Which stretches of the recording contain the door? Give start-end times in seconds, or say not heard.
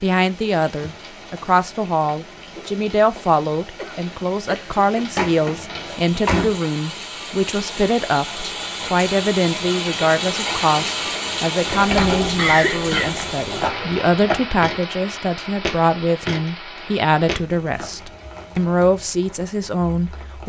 5.2-6.6, 11.7-14.0.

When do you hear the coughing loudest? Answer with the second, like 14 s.
13 s.